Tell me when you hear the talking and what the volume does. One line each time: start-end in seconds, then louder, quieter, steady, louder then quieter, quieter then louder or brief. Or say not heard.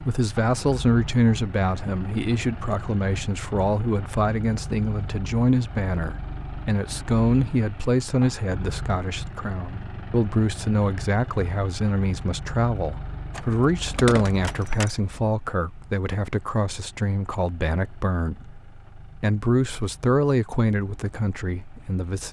0.0-22.2 steady.